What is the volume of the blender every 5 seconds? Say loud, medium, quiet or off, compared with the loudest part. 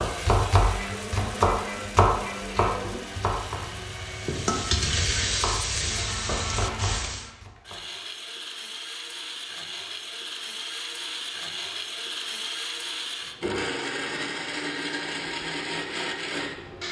medium, medium, loud, loud.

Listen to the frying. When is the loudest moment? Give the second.
5 s.